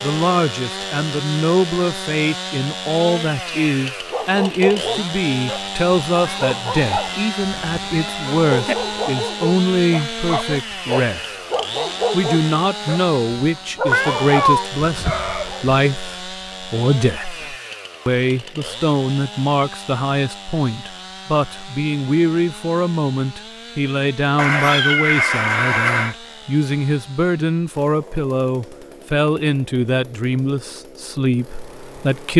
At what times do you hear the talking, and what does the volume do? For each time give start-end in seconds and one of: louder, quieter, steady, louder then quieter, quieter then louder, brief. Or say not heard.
0.0-11.3 steady
12.1-32.3 steady.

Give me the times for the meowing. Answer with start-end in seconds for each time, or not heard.
6.2-8.8, 13.9-14.7, 24.4-26.1.